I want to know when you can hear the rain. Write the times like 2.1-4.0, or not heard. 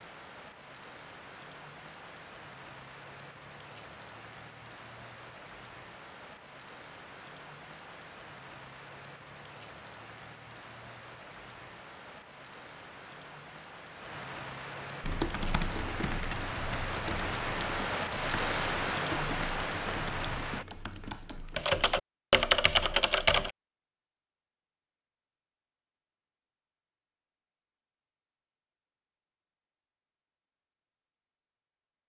0.0-20.6.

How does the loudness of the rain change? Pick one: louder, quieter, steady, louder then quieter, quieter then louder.
louder.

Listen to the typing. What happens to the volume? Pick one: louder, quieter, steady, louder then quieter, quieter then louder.
quieter then louder.